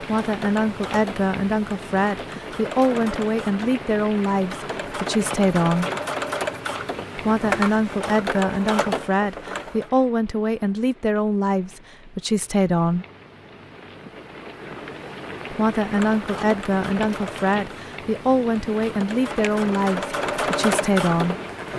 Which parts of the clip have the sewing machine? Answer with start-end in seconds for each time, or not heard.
0.0-9.9, 15.8-21.7.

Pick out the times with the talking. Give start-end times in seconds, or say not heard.
0.0-5.9, 7.2-13.1, 15.5-21.4.